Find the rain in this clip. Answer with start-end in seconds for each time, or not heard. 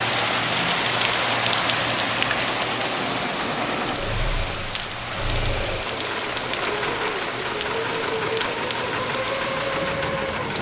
0.0-10.5.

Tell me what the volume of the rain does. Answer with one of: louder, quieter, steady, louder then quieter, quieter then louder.
quieter.